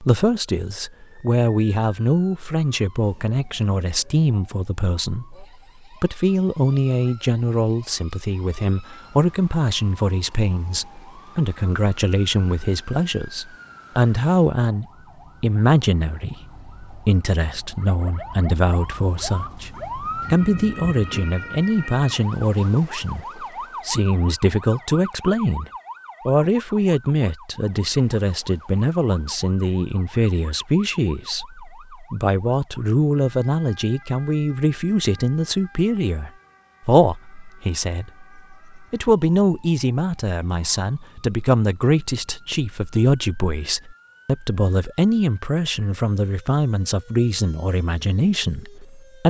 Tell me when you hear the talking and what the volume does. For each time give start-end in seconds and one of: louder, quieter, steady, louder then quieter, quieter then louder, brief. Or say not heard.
0.0-49.2 steady.